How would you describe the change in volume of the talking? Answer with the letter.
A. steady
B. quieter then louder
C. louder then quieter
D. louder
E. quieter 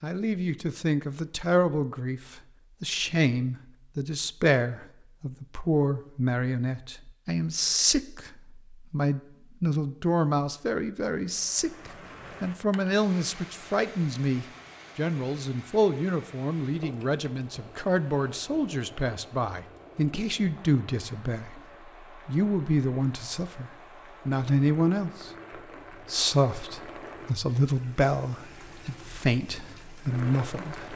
A.